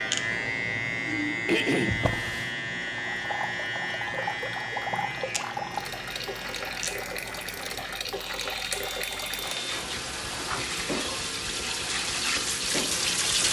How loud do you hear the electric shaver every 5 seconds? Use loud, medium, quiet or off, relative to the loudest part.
loud, medium, medium.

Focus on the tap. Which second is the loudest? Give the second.
13 s.